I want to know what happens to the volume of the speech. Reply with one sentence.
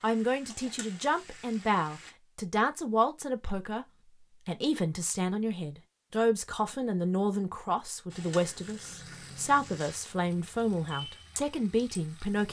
The volume of the speech stays about the same.